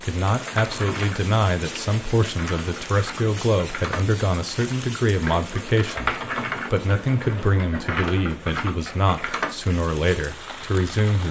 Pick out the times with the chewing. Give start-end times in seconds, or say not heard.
not heard.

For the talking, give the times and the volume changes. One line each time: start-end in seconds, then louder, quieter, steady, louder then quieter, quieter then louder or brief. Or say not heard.
0.0-11.2 steady.